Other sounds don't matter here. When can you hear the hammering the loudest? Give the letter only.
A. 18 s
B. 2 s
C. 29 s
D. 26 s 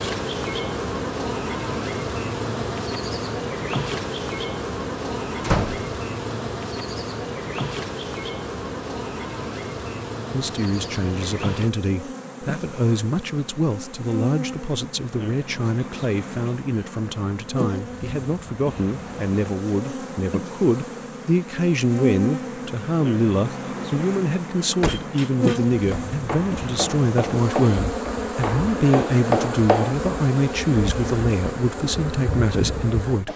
C.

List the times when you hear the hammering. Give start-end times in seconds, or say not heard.
24.9-29.9.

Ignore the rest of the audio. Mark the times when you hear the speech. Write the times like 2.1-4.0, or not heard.
10.3-33.3.